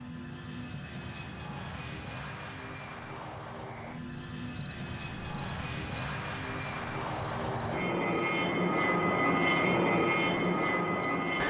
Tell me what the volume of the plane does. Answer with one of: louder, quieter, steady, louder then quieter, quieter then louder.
louder.